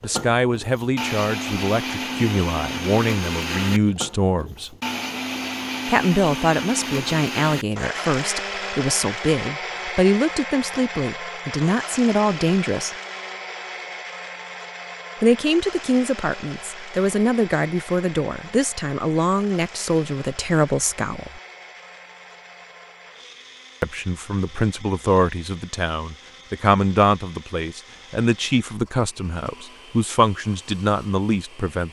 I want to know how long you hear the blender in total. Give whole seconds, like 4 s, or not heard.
32 s.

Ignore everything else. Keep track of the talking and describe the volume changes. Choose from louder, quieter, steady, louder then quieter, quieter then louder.
steady.